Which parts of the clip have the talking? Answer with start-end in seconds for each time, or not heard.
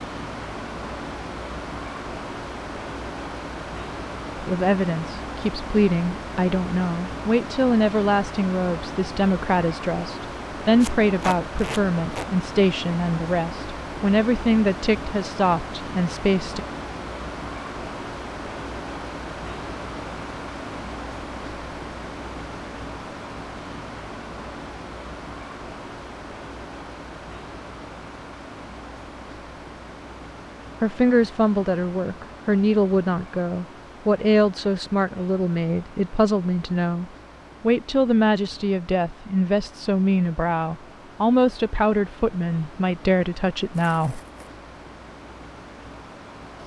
4.3-16.6, 30.8-44.2.